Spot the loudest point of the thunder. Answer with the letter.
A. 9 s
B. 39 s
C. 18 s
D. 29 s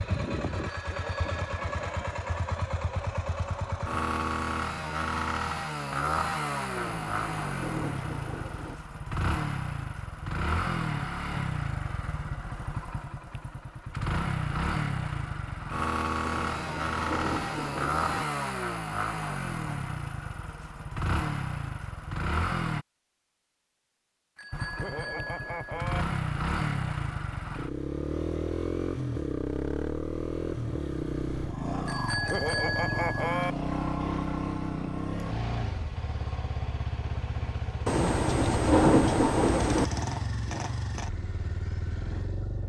B.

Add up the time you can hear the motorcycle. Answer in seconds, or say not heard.
41 s.